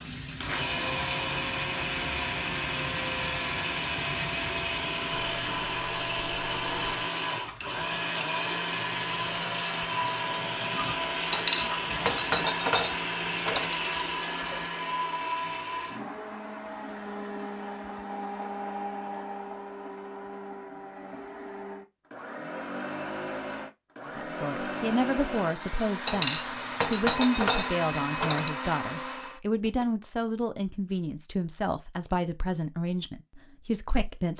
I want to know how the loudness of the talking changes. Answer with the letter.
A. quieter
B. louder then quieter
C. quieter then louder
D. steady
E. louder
D.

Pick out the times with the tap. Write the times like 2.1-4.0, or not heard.
0.0-14.7.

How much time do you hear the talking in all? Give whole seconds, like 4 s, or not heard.
10 s.